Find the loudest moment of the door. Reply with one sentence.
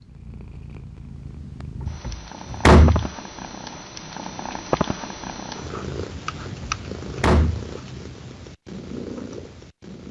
The volume of the door peaks at 3 seconds.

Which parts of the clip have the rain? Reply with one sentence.
The rain can't be heard in this clip.